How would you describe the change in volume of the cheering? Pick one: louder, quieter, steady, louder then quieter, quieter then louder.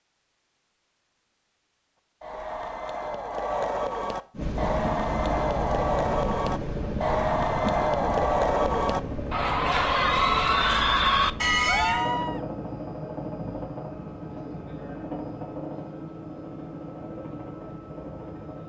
louder.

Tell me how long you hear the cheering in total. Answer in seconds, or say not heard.
10 s.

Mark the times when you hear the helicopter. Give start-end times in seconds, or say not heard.
4.3-18.6.